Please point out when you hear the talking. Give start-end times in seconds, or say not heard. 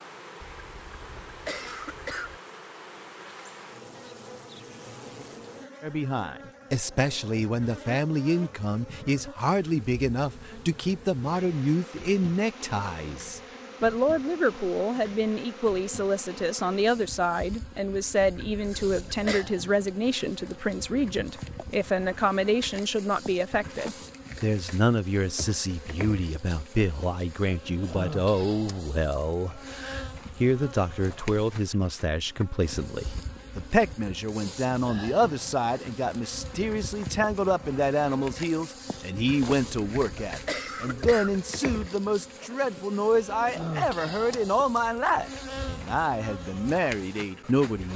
5.8-47.9.